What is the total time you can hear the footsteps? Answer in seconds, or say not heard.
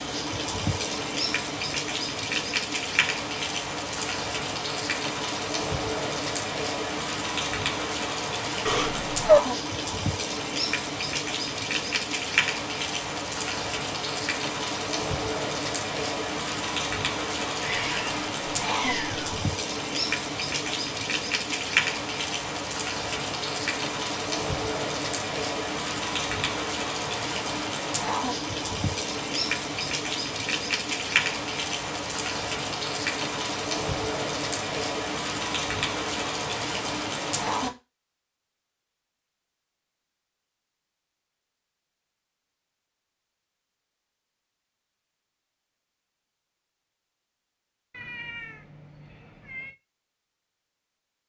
not heard.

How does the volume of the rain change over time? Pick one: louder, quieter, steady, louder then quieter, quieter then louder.
steady.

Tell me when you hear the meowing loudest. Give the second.
9 s.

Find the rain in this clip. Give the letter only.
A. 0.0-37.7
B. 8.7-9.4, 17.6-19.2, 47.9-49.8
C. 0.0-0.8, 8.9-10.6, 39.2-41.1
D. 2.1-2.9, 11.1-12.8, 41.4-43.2
A.